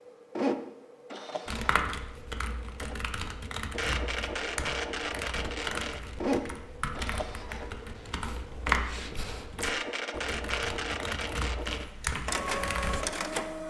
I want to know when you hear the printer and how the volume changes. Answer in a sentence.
You can hear the printer from 0.0 to 13.6 s, at a steady volume.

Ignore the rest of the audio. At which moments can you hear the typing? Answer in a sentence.
You can hear the typing from 1.4 to 13.0 s.